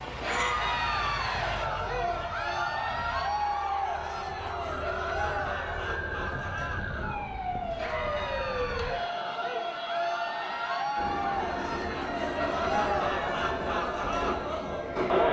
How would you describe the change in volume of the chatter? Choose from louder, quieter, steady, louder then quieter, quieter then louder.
quieter then louder.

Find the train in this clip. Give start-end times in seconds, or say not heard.
0.0-1.7, 10.9-15.2.